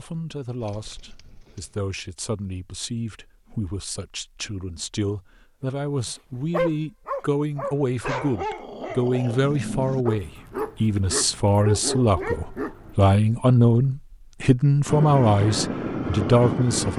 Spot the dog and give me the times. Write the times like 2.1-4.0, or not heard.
5.6-12.9.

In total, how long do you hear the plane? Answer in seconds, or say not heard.
2 s.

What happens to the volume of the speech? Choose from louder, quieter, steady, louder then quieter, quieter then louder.
louder.